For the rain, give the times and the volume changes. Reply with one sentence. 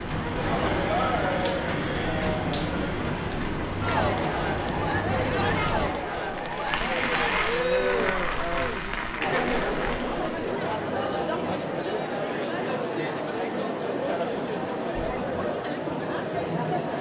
You can hear the rain from 0.0 to 10.4 s, at a steady volume.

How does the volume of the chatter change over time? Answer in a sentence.
The loudness of the chatter stays about the same.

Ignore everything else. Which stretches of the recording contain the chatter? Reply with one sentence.
You can hear the chatter from 0.2 to 16.9 s.